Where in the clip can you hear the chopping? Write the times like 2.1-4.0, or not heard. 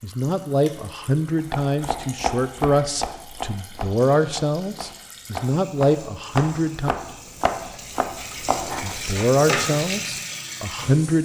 1.4-9.2.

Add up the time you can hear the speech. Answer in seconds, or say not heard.
9 s.